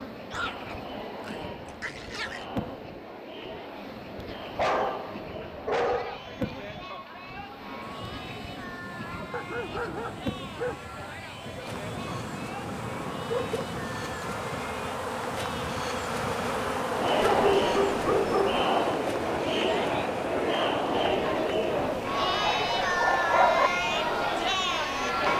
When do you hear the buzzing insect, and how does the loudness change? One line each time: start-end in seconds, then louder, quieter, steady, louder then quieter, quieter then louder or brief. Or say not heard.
0.0-25.3 louder then quieter.